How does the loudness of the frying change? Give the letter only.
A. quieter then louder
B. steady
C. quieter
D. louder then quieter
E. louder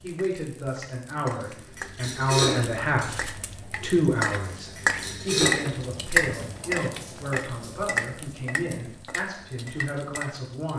D.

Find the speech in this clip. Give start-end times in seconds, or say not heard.
0.0-10.7.